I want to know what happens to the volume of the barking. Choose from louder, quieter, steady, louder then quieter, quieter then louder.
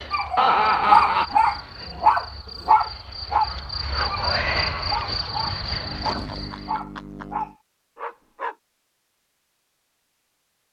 quieter.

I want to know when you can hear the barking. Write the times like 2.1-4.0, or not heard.
0.1-8.6.